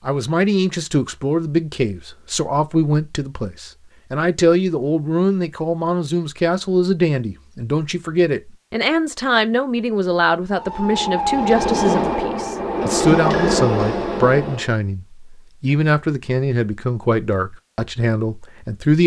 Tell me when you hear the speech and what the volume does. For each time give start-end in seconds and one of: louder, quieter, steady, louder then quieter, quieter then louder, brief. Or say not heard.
0.1-19.0 steady.